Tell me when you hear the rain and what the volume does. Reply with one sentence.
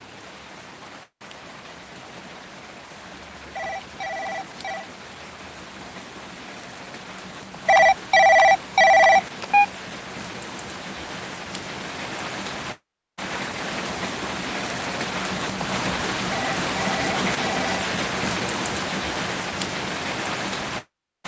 The rain can be heard from 0.0 to 21.2 s, getting louder.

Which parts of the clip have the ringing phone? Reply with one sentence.
You can hear the ringing phone from 3.5 to 4.9 s, from 7.7 to 9.7 s and from 16.3 to 17.6 s.